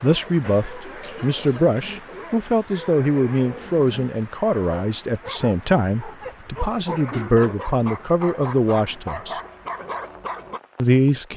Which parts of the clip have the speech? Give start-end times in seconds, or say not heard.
0.0-9.4, 10.8-11.3.